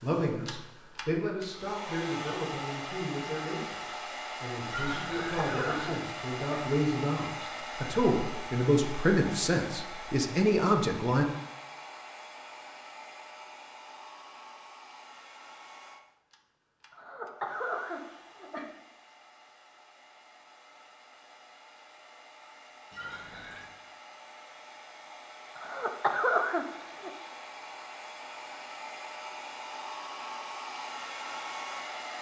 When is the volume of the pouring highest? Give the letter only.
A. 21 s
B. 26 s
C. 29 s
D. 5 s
D.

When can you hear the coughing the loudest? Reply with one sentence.
The loudest moment of the coughing is at 26 seconds.